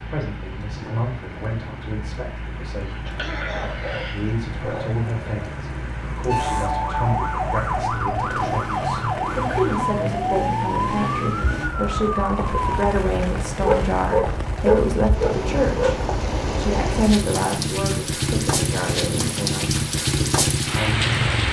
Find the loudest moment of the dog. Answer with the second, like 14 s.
15 s.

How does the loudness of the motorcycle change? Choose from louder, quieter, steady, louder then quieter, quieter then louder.
louder.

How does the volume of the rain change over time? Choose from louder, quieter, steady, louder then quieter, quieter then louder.
louder.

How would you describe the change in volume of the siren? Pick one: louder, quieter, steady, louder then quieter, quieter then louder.
steady.